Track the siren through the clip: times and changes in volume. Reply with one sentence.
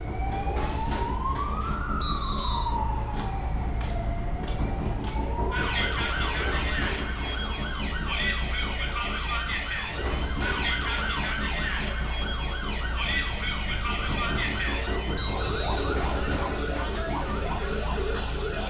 The siren can be heard from 0.0 to 18.6 s, at a steady volume.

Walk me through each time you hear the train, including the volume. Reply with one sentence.
The train can be heard from 0.0 to 18.6 s, at a steady volume.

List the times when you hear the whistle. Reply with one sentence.
The whistle can be heard from 1.9 to 2.8 s and from 15.2 to 15.9 s.